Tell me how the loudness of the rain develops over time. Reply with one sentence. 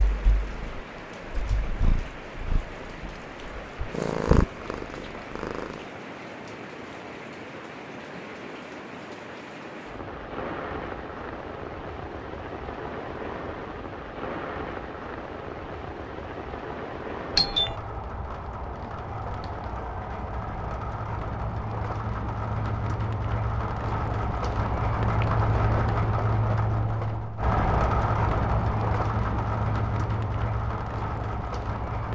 The loudness of the rain goes up.